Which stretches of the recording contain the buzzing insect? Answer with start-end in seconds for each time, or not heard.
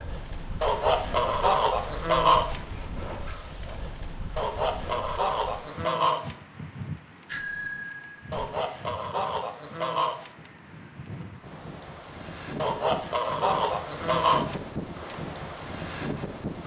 not heard.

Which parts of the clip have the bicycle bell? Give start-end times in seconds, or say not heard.
7.2-8.5.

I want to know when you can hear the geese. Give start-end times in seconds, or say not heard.
0.6-2.6, 4.3-6.3, 8.3-10.3, 12.6-14.6.